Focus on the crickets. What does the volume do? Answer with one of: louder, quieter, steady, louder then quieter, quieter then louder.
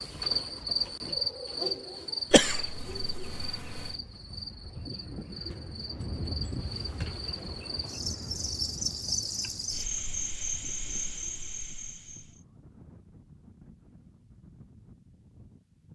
quieter then louder.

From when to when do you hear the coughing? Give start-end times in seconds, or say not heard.
2.3-4.0.